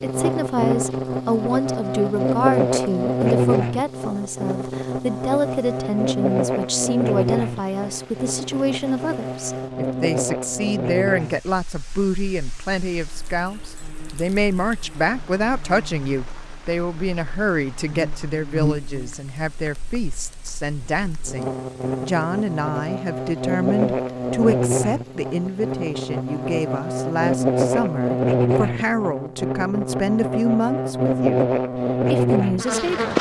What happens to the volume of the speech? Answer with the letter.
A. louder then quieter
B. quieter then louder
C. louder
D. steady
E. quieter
D.